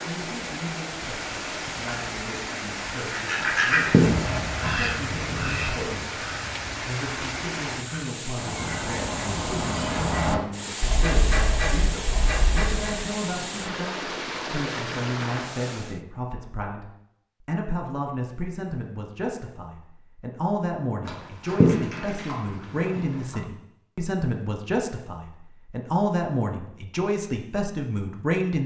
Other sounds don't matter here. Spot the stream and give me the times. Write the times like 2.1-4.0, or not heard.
0.0-16.0.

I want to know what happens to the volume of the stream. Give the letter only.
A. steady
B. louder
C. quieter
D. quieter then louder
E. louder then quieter
A.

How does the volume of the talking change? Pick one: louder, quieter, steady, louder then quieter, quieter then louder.
louder.